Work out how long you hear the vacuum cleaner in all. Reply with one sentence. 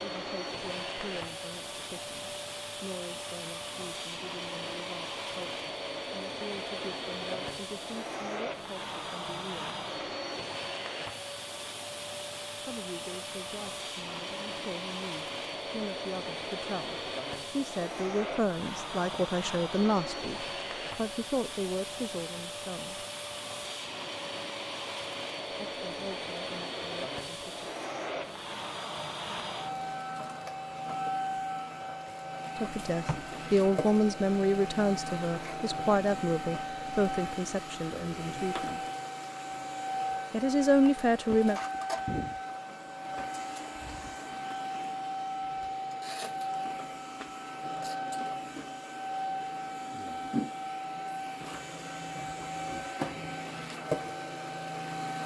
You can hear the vacuum cleaner for 55 seconds altogether.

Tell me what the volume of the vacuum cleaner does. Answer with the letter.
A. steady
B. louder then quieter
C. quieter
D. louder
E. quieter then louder
A.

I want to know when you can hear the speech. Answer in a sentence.
The speech can be heard from 0.0 to 9.8 s, from 12.7 to 23.1 s, from 25.7 to 27.6 s, from 32.6 to 38.9 s and from 40.3 to 41.6 s.